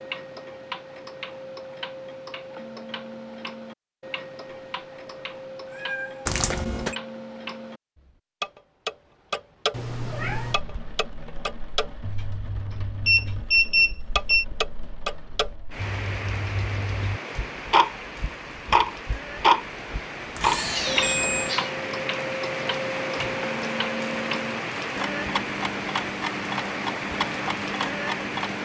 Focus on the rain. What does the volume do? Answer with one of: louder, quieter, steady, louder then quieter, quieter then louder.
louder.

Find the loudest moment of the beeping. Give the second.
14 s.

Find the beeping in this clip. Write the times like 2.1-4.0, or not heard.
6.2-7.0, 13.1-14.4, 20.4-21.6.